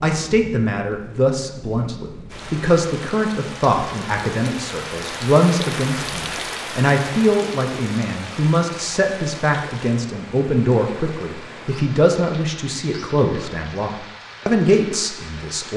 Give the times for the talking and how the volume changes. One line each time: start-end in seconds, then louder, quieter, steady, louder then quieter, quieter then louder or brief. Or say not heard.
0.0-15.7 steady.